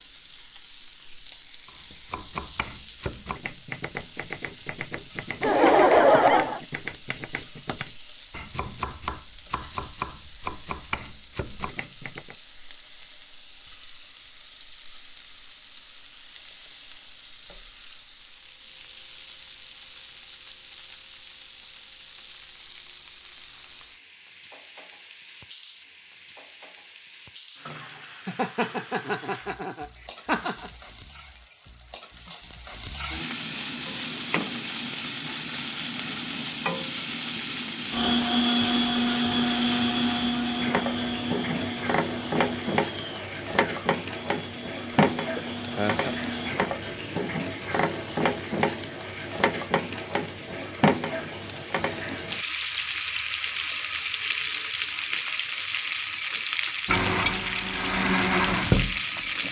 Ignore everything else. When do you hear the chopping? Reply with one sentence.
You can hear the chopping from 1.6 to 12.3 s.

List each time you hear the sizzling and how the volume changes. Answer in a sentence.
You can hear the sizzling from 0.0 to 59.4 s, getting louder.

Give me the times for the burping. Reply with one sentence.
The burping can't be heard in this clip.